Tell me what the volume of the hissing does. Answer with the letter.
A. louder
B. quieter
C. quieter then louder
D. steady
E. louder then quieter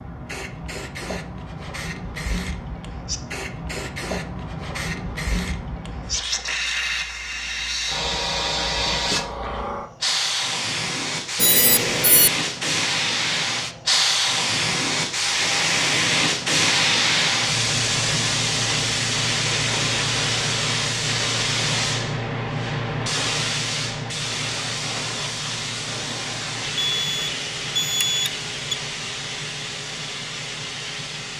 E.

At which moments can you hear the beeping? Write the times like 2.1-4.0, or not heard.
11.3-12.3, 26.8-28.8.